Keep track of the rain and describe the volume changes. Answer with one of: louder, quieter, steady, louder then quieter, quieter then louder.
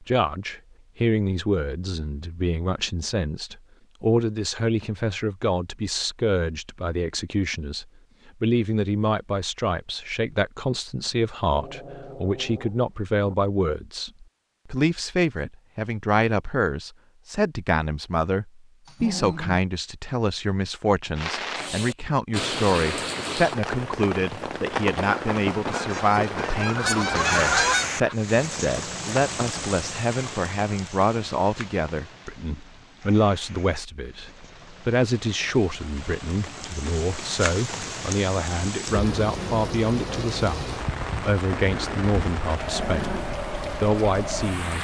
quieter then louder.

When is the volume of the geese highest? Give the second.
28 s.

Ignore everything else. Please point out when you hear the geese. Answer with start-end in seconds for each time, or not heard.
25.7-28.1.